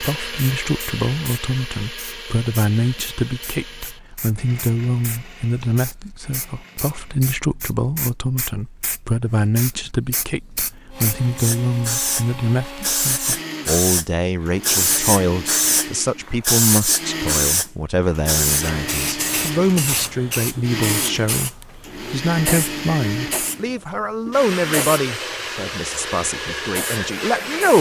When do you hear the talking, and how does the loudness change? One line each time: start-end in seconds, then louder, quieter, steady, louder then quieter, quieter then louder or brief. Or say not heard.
0.0-27.7 steady.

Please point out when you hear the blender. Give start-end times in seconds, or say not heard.
0.0-7.2, 10.9-27.7.